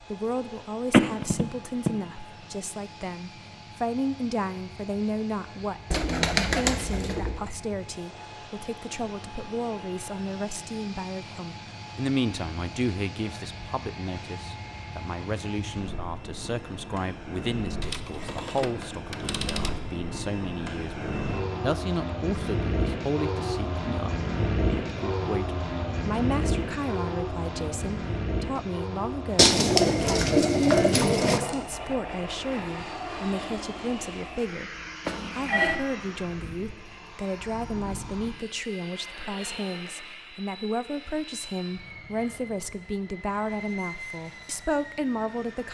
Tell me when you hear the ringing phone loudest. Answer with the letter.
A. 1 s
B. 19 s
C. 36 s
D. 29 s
A.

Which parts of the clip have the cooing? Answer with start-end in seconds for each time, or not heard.
5.9-7.4, 29.4-31.4.